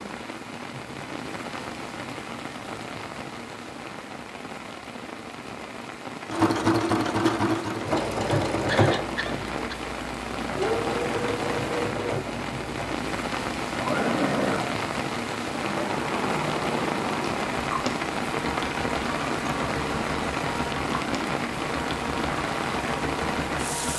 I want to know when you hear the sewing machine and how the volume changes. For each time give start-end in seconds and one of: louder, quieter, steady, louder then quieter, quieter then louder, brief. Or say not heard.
6.2-23.9 quieter.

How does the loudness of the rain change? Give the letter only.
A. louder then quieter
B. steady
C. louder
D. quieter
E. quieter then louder
C.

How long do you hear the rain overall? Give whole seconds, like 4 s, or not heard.
24 s.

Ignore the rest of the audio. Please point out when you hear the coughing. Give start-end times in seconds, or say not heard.
8.7-9.8.